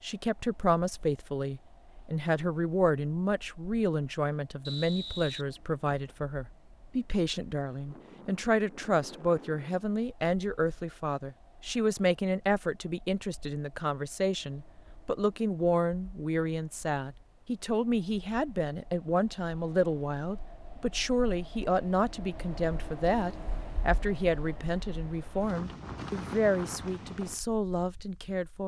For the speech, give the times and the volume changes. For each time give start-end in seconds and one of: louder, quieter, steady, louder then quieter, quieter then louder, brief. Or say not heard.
0.0-28.6 steady.